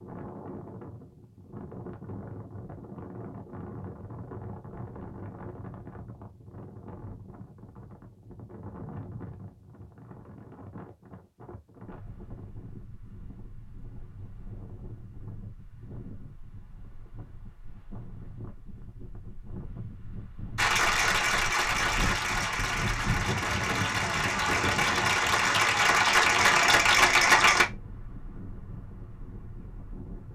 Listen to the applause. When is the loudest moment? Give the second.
27 s.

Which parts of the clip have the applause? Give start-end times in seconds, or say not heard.
20.6-27.6.